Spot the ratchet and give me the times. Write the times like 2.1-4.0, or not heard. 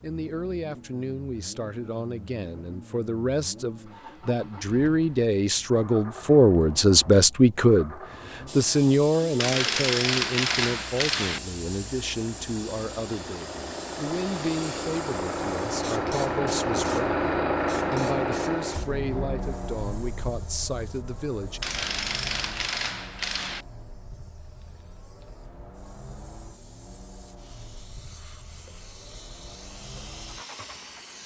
9.4-11.4, 21.6-23.6.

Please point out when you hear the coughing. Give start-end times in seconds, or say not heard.
not heard.